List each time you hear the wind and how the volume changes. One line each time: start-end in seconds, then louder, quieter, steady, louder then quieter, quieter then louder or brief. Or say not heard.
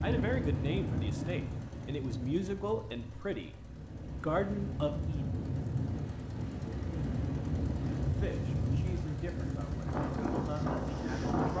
0.0-11.5 quieter then louder.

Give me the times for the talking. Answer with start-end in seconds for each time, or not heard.
0.0-5.3, 8.0-11.5.